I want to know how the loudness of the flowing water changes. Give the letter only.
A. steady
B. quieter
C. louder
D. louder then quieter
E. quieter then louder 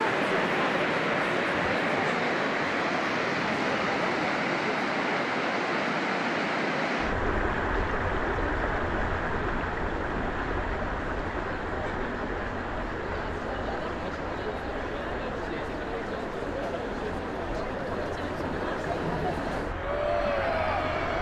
B.